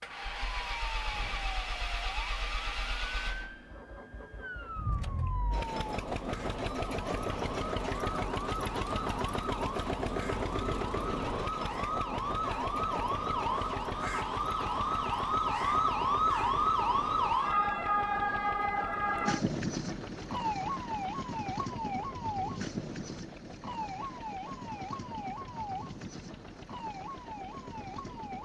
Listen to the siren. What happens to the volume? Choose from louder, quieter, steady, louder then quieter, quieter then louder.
louder then quieter.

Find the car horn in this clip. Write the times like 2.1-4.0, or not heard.
not heard.